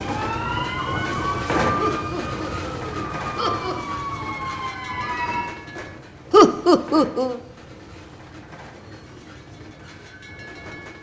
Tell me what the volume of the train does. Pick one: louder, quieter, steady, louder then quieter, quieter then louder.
quieter.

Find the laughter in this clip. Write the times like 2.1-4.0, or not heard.
1.8-3.8, 6.3-7.3.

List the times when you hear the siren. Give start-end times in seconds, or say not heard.
0.0-5.5.